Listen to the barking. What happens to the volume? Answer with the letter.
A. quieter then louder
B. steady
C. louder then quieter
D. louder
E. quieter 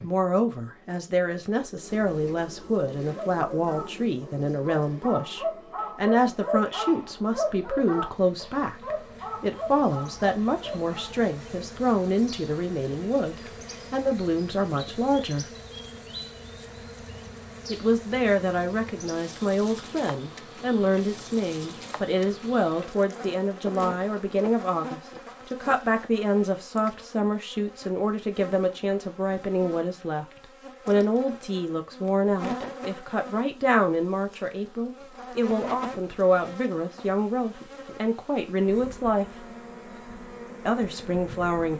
C.